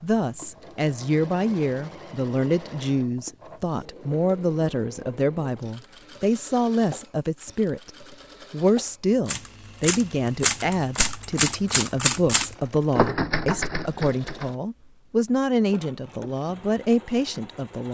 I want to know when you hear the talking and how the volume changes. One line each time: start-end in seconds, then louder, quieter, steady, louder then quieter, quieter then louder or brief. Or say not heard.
0.0-17.8 steady.